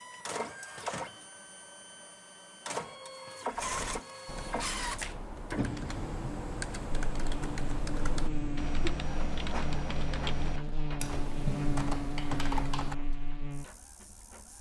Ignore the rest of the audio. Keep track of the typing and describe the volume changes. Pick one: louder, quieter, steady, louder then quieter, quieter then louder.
louder.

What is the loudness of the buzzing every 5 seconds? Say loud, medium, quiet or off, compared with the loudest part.
off, loud, loud.